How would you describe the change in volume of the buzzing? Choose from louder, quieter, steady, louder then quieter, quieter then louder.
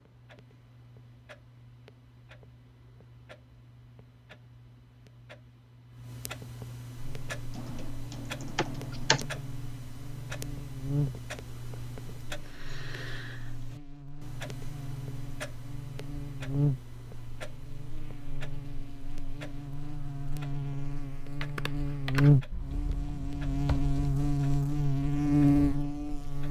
quieter then louder.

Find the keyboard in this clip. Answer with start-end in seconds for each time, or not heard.
7.5-9.2, 21.4-24.2.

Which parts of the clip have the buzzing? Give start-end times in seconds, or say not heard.
7.0-26.4.